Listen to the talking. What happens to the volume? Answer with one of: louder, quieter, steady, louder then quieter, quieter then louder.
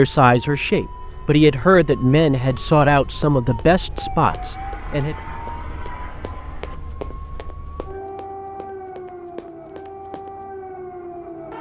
louder then quieter.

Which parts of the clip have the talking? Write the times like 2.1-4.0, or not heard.
0.0-5.2.